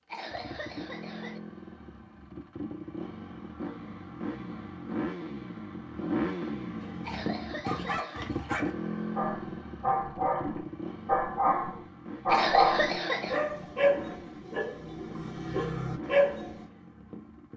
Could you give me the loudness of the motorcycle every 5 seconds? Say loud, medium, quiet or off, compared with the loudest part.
medium, loud, medium, medium.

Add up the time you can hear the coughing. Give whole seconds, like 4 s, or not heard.
4 s.